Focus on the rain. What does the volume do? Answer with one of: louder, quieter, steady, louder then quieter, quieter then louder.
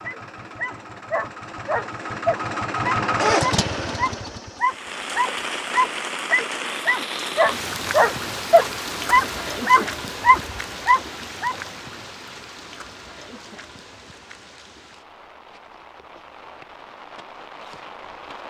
quieter.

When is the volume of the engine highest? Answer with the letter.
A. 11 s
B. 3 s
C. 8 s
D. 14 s
B.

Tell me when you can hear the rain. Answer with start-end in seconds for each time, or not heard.
4.6-18.4.